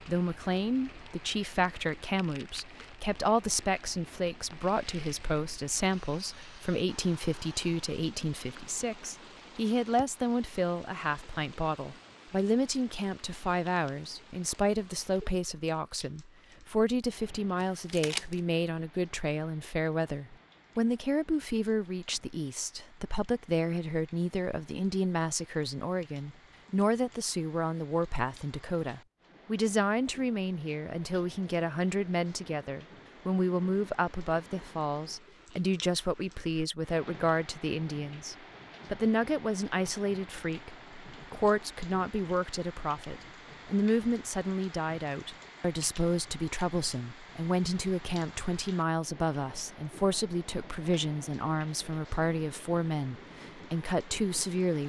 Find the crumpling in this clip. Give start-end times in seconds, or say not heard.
17.6-18.4.